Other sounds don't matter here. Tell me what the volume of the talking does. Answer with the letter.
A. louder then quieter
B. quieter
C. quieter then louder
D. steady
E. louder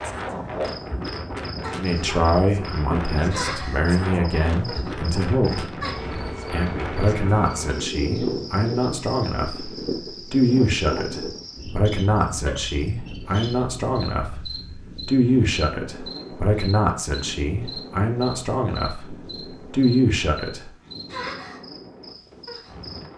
D.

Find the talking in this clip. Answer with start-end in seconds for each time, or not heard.
1.7-5.7, 6.5-9.7, 10.3-20.7.